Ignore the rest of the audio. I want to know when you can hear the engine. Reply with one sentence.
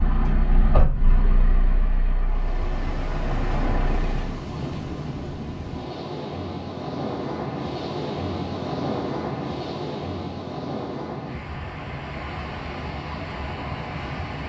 The engine can be heard from 0.0 to 4.4 s.